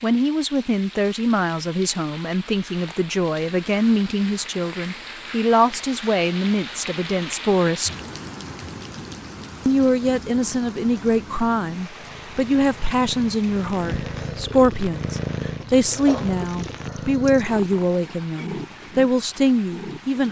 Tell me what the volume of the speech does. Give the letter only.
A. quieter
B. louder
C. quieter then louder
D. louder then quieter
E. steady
E.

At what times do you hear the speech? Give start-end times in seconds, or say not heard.
0.0-7.9, 9.7-20.2.